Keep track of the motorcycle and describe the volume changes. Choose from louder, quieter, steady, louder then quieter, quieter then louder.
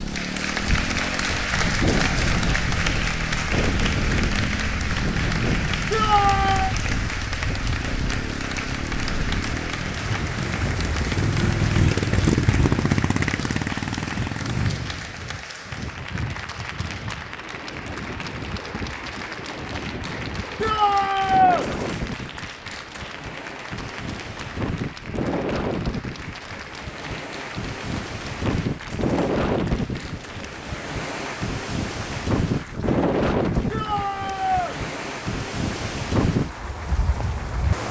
louder.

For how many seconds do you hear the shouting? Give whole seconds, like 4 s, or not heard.
3 s.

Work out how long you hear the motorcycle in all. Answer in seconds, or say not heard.
15 s.